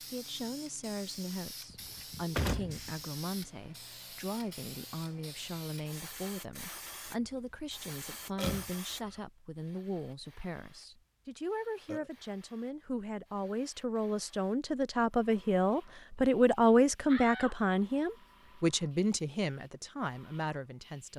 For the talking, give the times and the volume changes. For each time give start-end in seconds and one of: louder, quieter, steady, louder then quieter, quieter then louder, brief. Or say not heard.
0.0-21.1 louder.